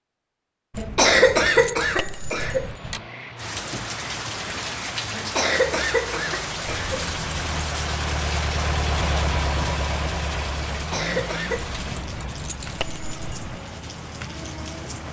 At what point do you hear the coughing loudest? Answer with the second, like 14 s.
1 s.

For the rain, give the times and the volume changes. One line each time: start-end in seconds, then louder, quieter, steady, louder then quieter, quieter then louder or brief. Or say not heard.
3.4-15.0 quieter.